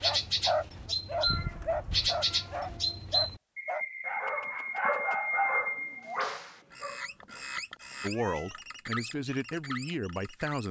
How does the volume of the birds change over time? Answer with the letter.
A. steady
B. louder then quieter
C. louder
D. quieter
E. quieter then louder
D.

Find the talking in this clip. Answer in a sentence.
You can hear the talking from 8.0 to 10.6 s.